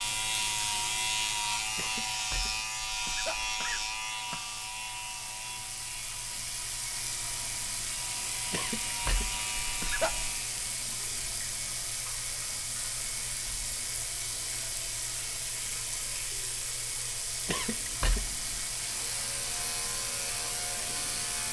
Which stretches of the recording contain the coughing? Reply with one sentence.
The coughing can be heard from 1.8 to 4.4 s, from 8.5 to 10.3 s and from 17.4 to 18.4 s.